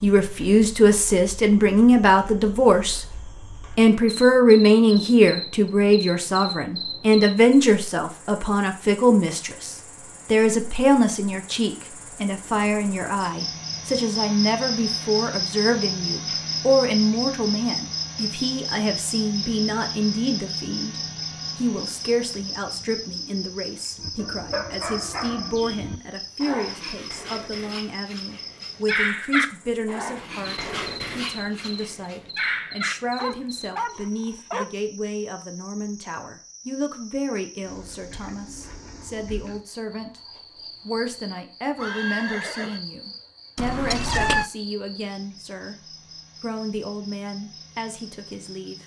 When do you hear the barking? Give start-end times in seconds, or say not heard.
23.9-34.6.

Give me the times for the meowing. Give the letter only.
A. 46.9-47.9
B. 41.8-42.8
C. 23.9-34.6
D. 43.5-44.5
D.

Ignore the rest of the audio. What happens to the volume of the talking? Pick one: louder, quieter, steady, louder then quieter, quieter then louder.
quieter.